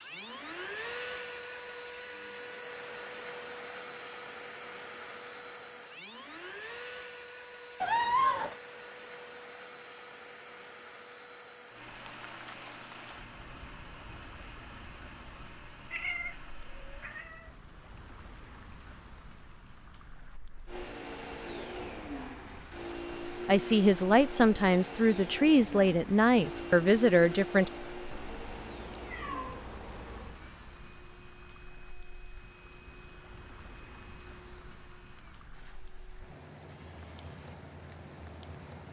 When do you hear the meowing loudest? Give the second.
8 s.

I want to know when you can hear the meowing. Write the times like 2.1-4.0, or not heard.
7.8-8.6, 15.9-17.5, 28.1-30.4.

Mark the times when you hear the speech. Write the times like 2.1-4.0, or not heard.
23.4-27.7.